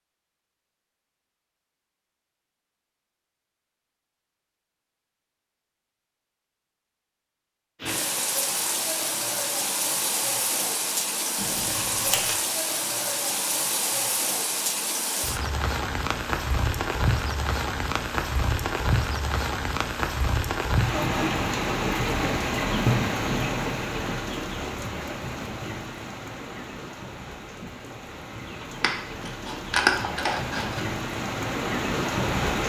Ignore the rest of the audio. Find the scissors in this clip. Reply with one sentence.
You can hear the scissors from 11.3 to 12.3 s and from 28.8 to 30.8 s.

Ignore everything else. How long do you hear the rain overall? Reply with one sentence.
You can hear the rain for 25 seconds altogether.